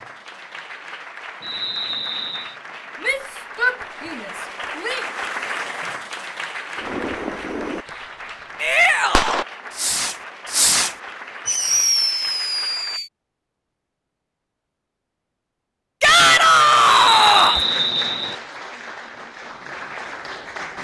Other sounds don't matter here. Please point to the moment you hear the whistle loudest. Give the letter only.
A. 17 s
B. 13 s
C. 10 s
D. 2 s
A.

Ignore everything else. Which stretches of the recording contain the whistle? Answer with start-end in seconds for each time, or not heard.
1.4-2.5, 16.9-18.4.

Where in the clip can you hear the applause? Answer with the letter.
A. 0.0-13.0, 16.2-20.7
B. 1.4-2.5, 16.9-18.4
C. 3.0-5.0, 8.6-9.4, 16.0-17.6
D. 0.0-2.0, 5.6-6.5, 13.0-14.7
A.